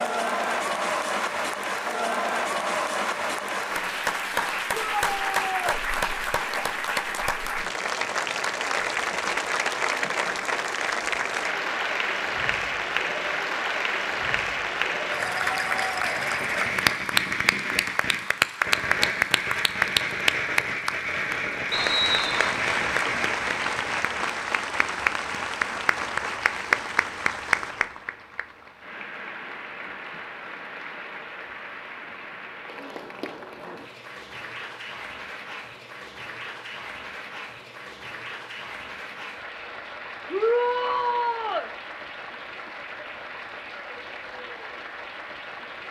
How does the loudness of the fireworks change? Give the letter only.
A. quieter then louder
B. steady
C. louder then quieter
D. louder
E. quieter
B.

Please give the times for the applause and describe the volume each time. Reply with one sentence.
The applause can be heard from 0.0 to 45.8 s, getting quieter.